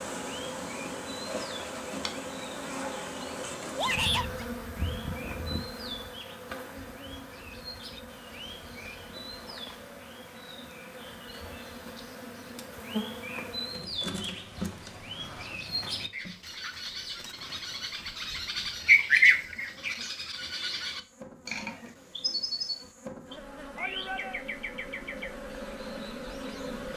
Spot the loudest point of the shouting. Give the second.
4 s.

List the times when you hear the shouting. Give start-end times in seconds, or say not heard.
3.8-4.5, 23.8-24.4.